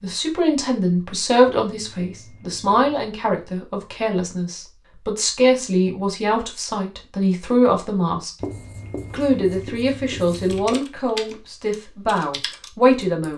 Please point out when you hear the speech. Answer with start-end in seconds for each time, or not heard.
0.0-8.3, 9.1-13.3.